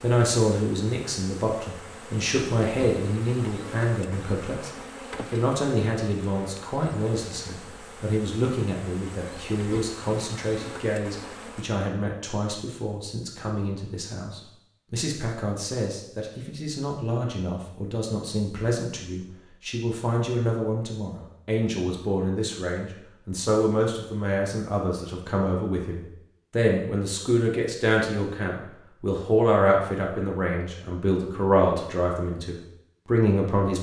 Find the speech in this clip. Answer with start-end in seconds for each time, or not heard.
0.0-4.7, 5.3-33.7.